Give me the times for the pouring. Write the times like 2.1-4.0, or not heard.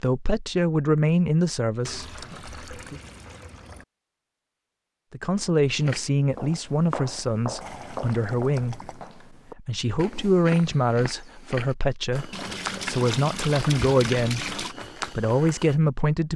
1.9-3.9, 7.6-9.1, 12.3-14.8.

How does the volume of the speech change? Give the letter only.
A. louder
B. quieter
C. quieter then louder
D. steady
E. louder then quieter
D.